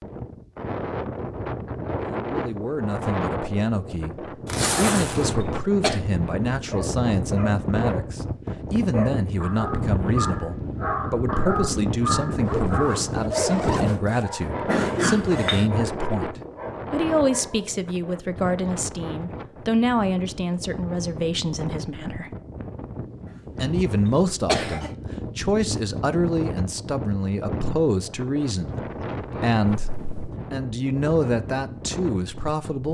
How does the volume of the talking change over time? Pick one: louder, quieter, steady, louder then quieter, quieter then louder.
steady.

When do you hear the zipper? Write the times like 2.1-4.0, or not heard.
4.5-5.2, 12.4-14.2, 29.9-30.3.